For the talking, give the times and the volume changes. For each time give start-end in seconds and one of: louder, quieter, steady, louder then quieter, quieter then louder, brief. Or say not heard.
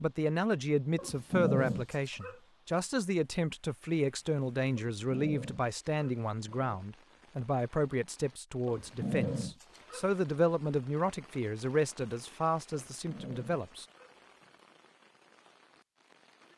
0.0-13.8 steady.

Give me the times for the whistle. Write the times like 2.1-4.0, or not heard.
not heard.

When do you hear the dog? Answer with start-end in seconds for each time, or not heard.
0.9-2.4, 5.0-6.8, 8.7-10.1, 12.7-14.5.